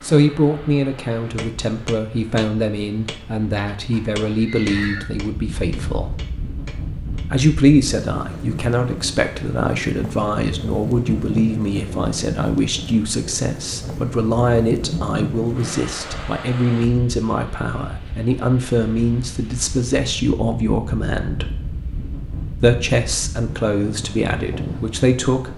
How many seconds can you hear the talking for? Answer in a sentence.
You can hear the talking for 23 seconds altogether.